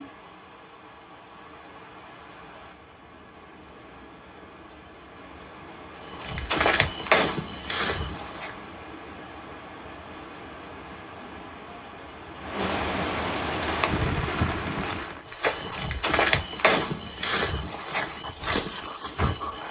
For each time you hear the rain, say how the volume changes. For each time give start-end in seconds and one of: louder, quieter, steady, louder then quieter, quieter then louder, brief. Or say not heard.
0.0-15.3 louder.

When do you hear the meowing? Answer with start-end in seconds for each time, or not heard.
not heard.